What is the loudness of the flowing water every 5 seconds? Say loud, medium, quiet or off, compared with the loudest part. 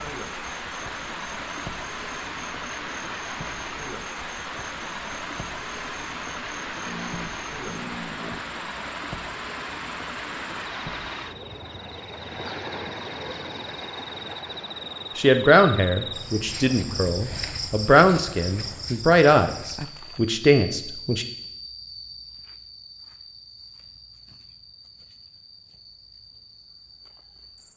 loud, loud, loud, quiet, off, off.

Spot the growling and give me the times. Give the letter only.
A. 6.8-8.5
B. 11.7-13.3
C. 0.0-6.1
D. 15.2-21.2
A.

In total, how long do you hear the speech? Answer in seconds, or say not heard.
6 s.